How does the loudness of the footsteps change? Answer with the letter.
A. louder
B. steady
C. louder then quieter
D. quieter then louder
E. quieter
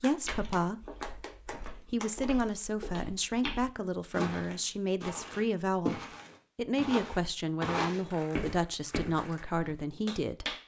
A.